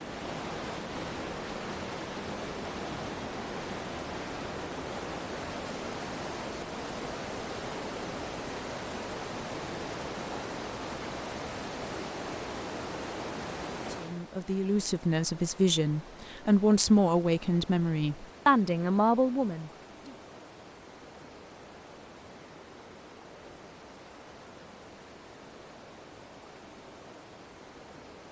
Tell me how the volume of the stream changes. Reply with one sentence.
The loudness of the stream goes down.